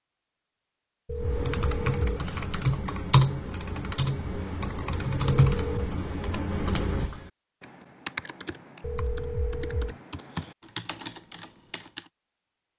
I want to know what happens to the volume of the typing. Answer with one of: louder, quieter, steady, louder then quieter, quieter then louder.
quieter.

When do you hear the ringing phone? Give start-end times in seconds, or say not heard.
1.1-2.5, 5.2-5.9, 8.8-9.9.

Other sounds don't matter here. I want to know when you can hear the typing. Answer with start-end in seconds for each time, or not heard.
1.1-12.1.